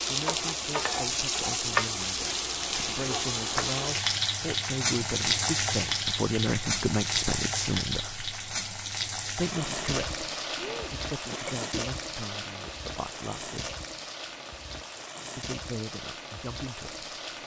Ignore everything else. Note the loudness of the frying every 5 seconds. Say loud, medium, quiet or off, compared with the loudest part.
loud, loud, medium, medium.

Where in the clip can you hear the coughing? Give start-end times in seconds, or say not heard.
10.6-11.8.